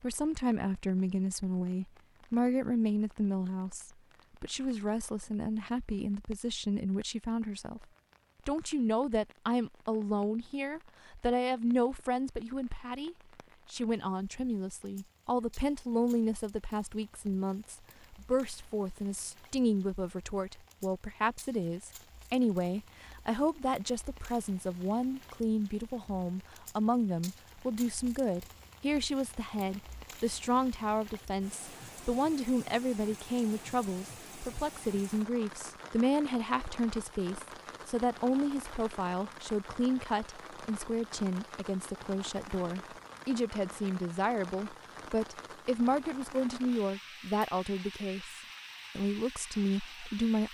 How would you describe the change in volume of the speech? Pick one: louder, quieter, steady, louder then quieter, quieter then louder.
steady.